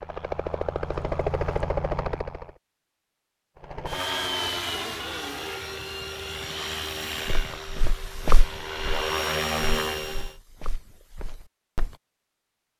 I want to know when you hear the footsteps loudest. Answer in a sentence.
The volume of the footsteps peaks at 8 seconds.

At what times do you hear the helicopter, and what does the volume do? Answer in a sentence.
You can hear the helicopter briefly from 0.0 to 2.5 s; and from 3.5 to 10.3 s, getting quieter then louder.